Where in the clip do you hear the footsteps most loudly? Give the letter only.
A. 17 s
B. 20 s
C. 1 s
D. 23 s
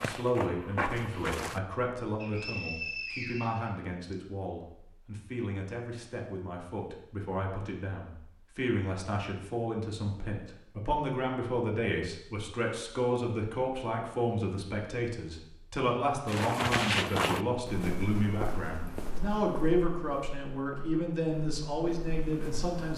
A.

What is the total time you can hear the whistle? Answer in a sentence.
You can hear the whistle for 2 seconds altogether.